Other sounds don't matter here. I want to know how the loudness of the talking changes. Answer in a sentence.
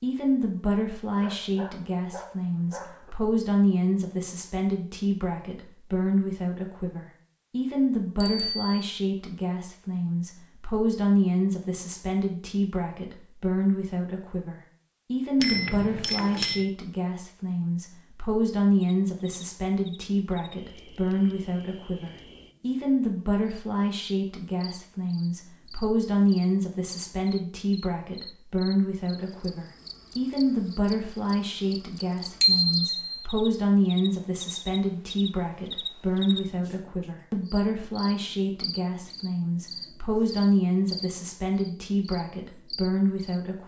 The loudness of the talking stays about the same.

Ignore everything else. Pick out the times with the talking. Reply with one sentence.
You can hear the talking from 0.0 to 43.6 s.